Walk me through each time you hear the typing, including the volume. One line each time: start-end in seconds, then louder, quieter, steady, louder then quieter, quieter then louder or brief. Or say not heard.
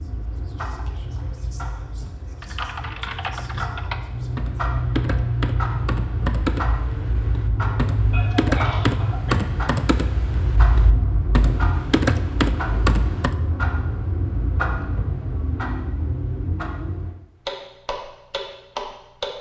2.4-13.3 louder.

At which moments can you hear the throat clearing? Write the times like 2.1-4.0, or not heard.
8.1-9.3.